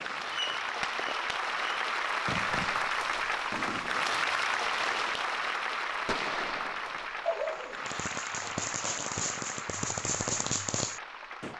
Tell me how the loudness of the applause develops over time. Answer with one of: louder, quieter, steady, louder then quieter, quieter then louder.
quieter.